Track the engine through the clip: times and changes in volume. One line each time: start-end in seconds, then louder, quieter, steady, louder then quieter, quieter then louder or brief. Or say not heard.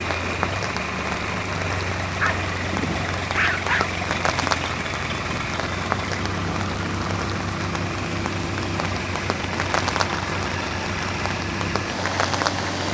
0.0-12.8 steady.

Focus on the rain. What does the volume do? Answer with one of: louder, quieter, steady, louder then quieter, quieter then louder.
steady.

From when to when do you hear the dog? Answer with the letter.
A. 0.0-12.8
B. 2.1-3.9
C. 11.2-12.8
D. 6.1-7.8
B.